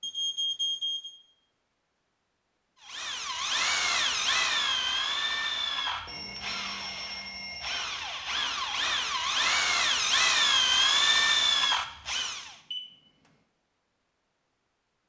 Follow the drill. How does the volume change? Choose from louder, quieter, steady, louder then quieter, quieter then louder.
quieter then louder.